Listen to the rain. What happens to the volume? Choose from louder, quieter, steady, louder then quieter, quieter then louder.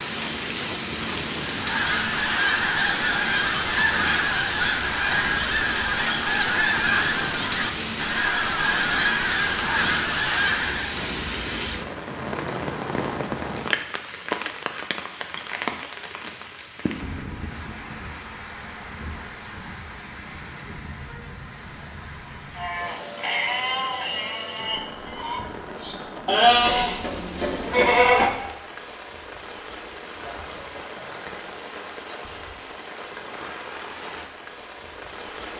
quieter.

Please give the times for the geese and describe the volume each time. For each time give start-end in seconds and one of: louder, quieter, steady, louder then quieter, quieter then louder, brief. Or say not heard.
1.5-11.0 steady.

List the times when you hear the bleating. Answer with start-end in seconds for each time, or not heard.
22.6-28.3.